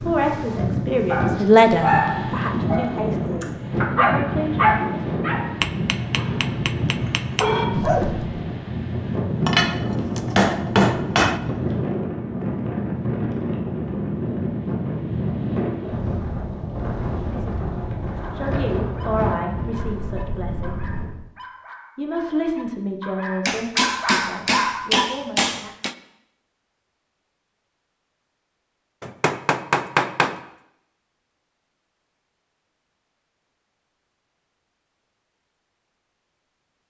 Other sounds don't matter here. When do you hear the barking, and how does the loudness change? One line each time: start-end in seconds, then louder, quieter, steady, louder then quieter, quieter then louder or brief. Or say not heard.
1.1-8.4 quieter then louder
18.2-25.1 louder.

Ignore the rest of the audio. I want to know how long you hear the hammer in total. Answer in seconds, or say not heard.
8 s.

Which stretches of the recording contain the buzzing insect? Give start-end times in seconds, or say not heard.
not heard.